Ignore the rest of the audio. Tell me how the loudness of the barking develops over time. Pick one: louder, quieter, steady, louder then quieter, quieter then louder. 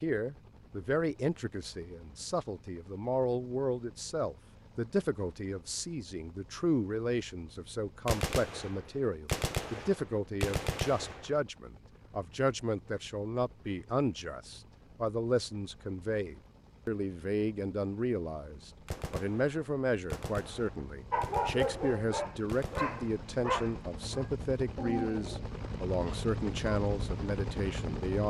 quieter then louder.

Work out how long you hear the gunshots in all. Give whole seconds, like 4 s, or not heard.
8 s.